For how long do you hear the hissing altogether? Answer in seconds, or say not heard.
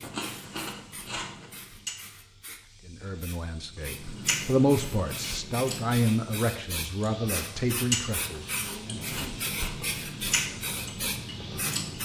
12 s.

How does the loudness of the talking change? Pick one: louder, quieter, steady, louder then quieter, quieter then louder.
louder then quieter.